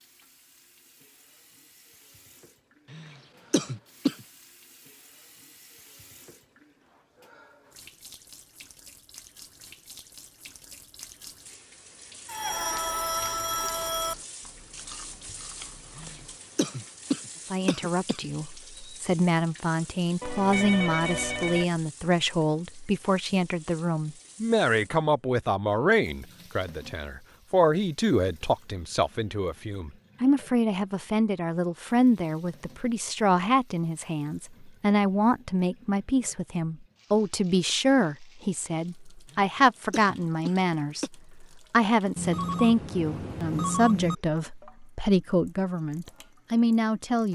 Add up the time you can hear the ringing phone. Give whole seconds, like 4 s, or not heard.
5 s.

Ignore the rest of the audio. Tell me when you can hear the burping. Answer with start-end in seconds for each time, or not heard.
not heard.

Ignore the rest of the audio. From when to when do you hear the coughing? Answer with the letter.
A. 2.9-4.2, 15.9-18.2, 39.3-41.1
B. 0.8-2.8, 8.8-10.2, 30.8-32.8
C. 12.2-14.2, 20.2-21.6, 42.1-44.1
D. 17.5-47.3
A.